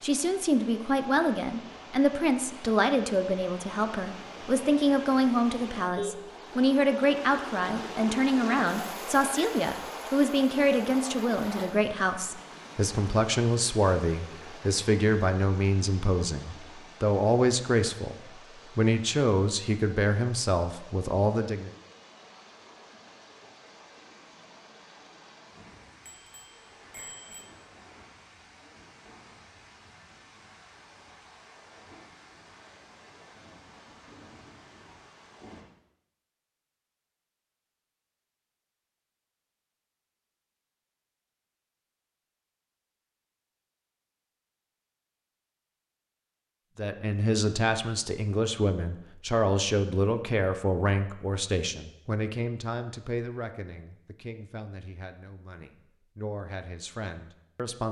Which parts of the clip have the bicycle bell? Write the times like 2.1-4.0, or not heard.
26.1-27.4.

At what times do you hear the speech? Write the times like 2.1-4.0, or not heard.
0.0-21.7, 46.8-57.8.